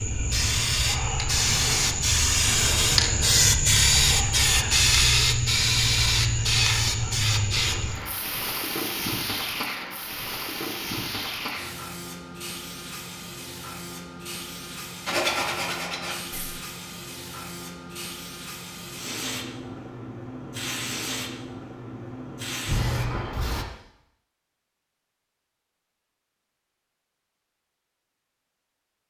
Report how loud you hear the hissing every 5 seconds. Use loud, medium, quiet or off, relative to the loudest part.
loud, loud, quiet, quiet, medium, off.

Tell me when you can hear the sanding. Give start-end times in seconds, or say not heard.
15.1-16.6.